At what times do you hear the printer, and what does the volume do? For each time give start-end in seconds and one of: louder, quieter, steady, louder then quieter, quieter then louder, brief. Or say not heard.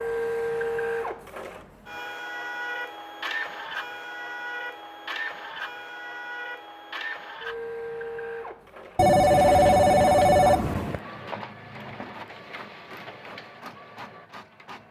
0.0-14.8 quieter.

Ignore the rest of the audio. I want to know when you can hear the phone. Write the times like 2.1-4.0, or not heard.
8.9-11.0.